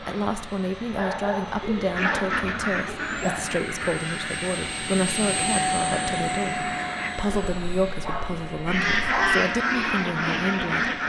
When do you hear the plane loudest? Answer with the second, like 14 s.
6 s.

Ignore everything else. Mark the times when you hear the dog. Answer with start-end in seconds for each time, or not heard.
0.9-3.4, 7.2-9.3.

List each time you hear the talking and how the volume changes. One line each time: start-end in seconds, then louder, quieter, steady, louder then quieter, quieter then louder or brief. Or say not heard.
0.0-10.9 steady.